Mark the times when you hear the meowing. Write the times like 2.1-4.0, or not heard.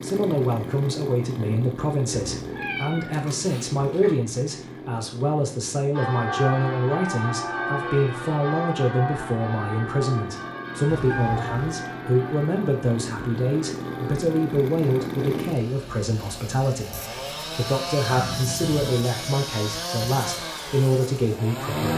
2.4-4.2, 10.8-11.8, 18.1-18.8.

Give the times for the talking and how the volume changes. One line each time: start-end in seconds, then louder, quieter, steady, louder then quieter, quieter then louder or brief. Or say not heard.
0.0-21.9 steady.